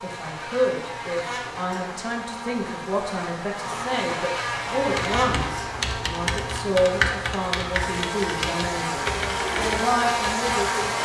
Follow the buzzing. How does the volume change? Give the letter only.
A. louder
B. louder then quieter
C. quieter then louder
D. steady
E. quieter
A.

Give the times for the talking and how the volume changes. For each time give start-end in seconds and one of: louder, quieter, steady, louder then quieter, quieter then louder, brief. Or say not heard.
0.0-10.9 steady.